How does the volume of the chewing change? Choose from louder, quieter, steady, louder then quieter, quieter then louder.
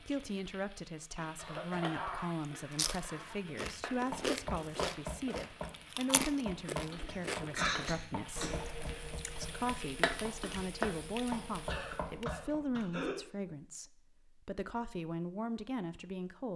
quieter.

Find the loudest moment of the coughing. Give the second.
8 s.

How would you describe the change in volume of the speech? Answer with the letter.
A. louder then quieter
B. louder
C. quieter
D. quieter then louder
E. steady
E.